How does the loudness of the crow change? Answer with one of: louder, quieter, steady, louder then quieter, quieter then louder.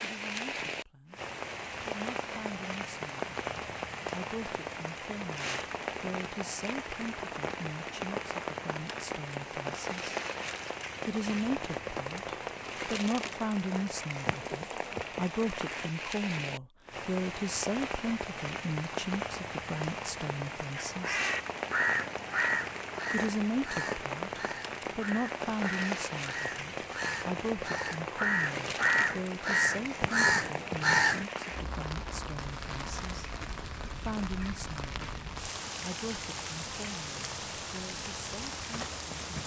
quieter then louder.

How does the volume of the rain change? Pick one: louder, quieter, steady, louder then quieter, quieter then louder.
steady.